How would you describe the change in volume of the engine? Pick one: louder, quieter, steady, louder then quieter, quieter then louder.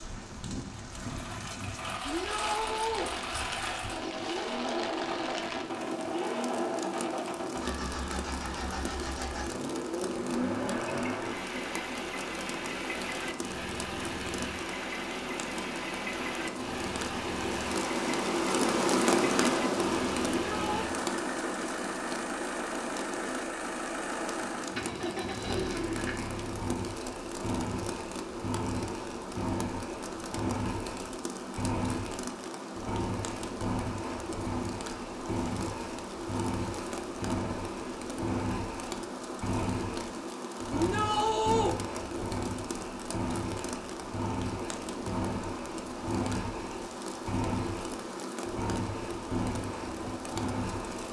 steady.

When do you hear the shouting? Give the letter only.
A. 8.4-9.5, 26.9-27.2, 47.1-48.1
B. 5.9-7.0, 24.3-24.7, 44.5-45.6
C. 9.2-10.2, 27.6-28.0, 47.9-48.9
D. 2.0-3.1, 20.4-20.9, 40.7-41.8
D.